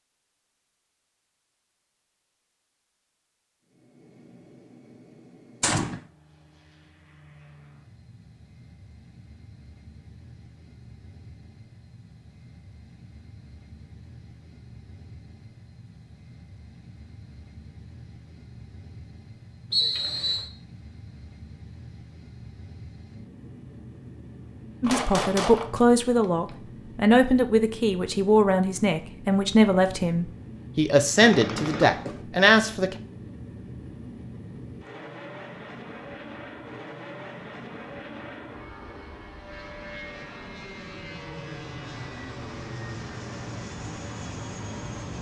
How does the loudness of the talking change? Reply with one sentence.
The volume of the talking stays about the same.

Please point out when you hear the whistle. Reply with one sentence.
You can hear the whistle from 19.7 to 20.4 s.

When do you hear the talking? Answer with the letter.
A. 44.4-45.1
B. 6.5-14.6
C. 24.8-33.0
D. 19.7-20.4
C.